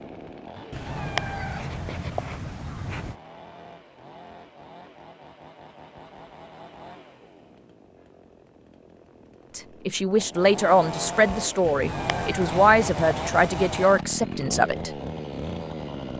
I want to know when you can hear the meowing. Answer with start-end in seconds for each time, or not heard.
0.7-3.1, 11.6-13.9.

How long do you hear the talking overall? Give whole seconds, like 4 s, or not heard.
5 s.